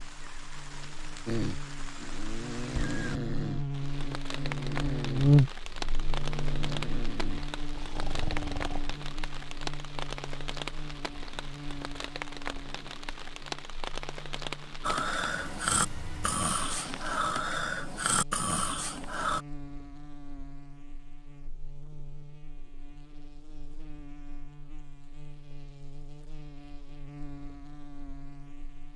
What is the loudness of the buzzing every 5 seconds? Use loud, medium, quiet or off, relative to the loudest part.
medium, loud, quiet, quiet, quiet, quiet.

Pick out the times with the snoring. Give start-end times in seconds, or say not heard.
1.2-8.8, 14.8-19.4.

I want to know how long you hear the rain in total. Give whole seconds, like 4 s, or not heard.
17 s.